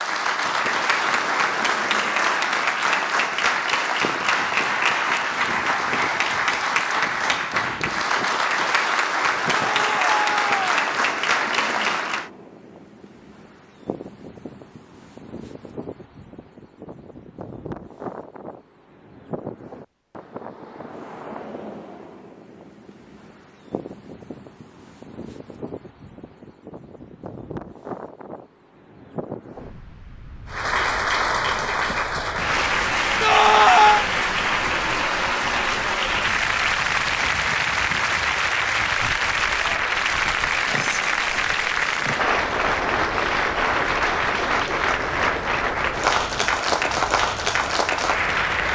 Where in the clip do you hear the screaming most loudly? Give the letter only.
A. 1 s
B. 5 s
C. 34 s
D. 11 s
C.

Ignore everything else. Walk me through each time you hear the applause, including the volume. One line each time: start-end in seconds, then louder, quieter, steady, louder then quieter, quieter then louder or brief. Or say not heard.
0.0-12.3 steady
30.4-48.7 steady.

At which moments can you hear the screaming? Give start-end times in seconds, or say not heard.
9.5-10.6, 33.2-34.0.